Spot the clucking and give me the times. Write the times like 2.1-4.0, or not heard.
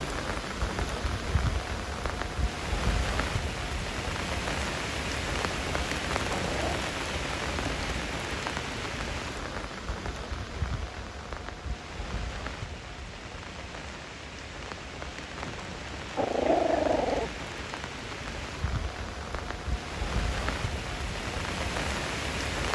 not heard.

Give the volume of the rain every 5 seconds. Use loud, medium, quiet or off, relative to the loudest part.
loud, loud, medium, medium, loud.